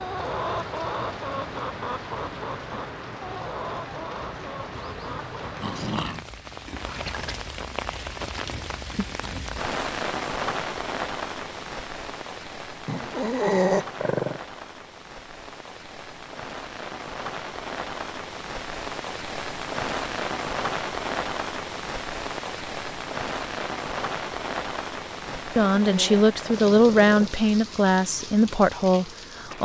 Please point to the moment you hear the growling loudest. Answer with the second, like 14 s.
14 s.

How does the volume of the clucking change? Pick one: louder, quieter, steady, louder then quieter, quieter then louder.
quieter.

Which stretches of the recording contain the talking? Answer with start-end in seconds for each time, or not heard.
25.6-29.5.